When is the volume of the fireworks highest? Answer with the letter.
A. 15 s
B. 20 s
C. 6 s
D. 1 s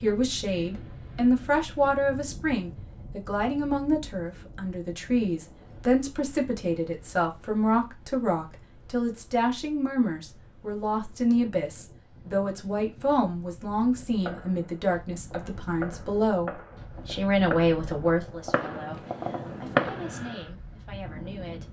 B.